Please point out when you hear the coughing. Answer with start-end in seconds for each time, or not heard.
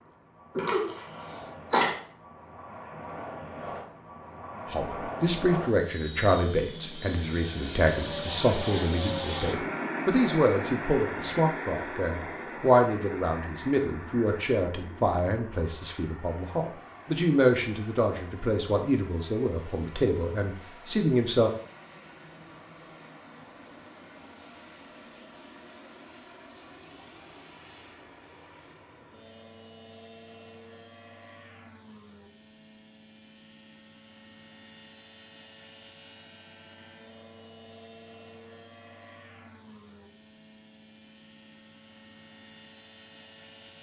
0.6-1.9.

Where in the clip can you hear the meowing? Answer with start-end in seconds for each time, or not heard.
not heard.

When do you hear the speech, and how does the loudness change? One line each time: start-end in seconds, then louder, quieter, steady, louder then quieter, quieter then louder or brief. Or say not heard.
4.7-21.5 steady.